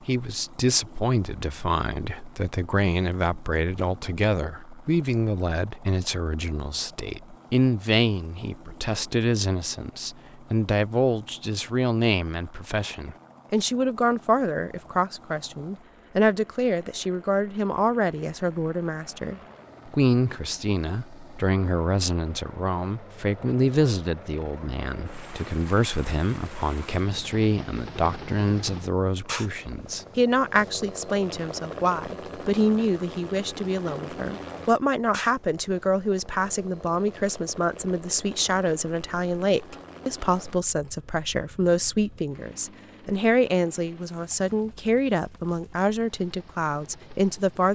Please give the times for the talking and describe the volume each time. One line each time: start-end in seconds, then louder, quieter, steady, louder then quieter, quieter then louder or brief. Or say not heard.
0.1-47.7 steady.